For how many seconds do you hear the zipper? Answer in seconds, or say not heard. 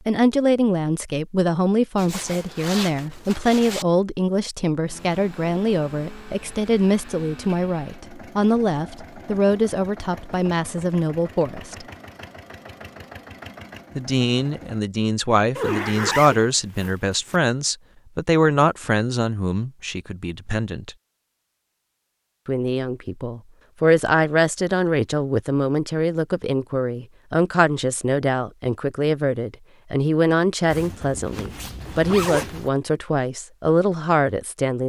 6 s.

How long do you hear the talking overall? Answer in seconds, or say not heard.
31 s.